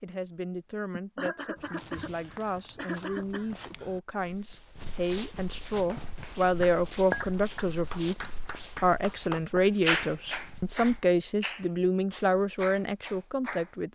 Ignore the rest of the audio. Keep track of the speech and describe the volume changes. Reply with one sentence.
The loudness of the speech goes up.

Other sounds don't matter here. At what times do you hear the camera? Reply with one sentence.
The camera can't be heard in this clip.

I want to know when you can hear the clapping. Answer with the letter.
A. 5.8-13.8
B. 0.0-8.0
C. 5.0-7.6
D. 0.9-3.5
A.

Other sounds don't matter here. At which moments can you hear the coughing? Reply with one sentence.
You can hear the coughing from 0.9 to 3.5 s.